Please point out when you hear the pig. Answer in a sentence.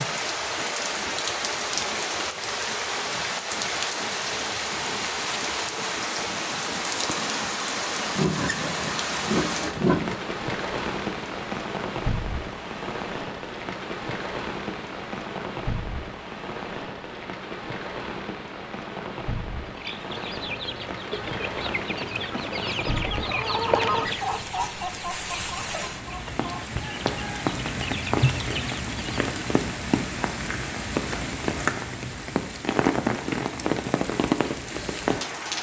The pig can be heard from 8.2 to 10.2 s.